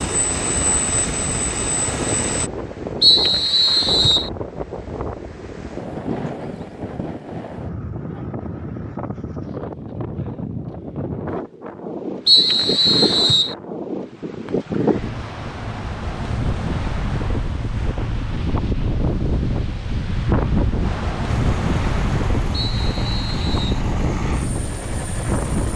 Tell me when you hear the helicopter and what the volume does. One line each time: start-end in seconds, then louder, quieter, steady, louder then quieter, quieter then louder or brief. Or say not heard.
0.0-2.5 brief
21.2-25.7 steady.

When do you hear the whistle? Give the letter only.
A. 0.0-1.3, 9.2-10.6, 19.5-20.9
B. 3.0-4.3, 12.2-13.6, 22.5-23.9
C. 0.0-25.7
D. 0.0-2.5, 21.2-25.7
B.